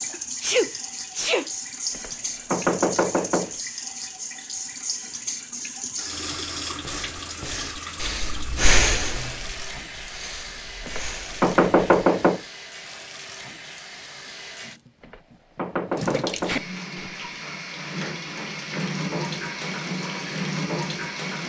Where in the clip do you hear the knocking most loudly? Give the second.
12 s.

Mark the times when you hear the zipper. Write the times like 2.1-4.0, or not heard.
not heard.